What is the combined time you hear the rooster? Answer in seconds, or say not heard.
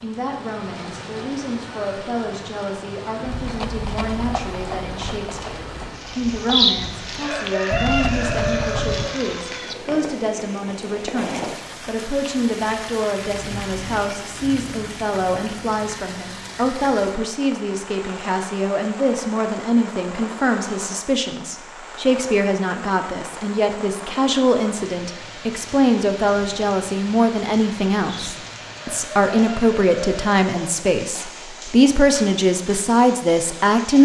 6 s.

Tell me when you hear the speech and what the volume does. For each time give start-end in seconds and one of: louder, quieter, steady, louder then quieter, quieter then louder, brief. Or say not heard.
0.0-34.0 louder.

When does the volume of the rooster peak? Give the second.
7 s.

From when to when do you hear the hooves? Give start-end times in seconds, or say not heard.
3.2-9.1.